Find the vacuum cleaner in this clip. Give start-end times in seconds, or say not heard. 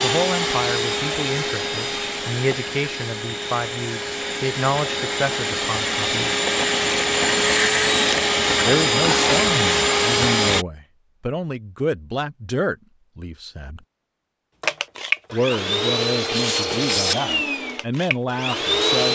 0.0-10.7, 14.6-19.1.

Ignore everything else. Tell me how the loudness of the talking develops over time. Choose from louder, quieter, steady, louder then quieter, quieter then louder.
steady.